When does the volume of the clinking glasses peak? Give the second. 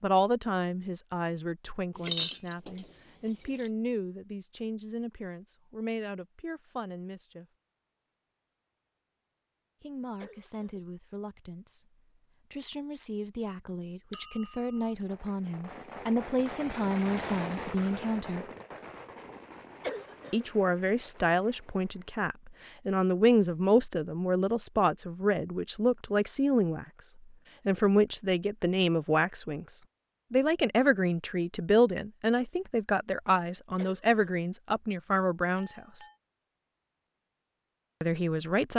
2 s.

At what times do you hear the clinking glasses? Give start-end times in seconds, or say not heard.
1.9-3.7, 14.1-14.8, 35.5-36.1.